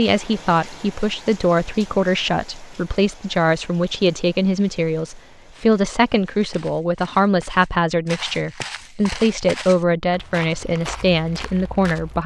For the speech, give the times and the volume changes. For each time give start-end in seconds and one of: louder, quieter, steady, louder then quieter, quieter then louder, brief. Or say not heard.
0.0-12.2 steady.